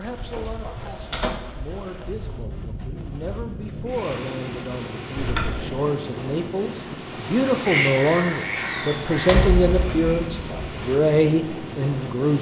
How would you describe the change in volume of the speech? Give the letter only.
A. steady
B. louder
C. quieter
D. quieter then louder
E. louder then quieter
B.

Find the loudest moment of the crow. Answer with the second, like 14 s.
8 s.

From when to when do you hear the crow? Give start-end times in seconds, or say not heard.
7.6-10.9.